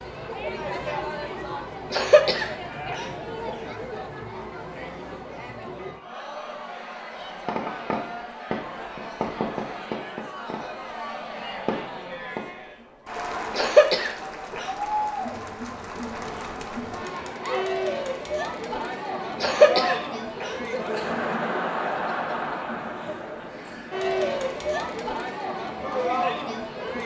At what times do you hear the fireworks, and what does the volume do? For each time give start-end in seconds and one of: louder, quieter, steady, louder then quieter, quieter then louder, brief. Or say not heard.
7.1-12.9 quieter then louder.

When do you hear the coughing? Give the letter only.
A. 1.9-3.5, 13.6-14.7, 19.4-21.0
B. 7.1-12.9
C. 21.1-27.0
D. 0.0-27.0
A.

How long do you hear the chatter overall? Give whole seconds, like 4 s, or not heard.
27 s.